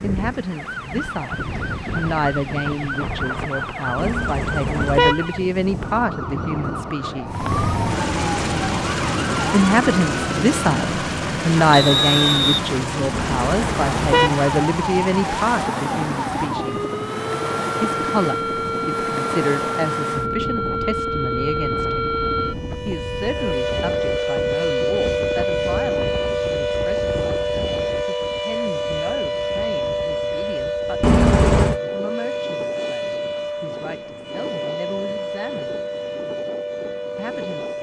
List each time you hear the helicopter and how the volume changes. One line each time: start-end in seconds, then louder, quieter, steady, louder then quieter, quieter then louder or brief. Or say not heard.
7.2-22.9 quieter.